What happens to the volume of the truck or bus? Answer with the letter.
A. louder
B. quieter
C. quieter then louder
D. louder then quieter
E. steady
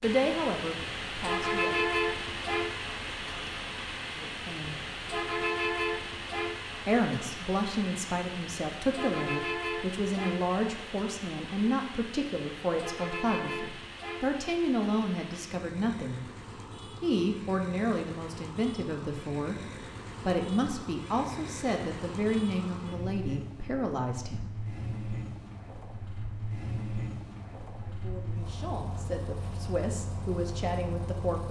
B.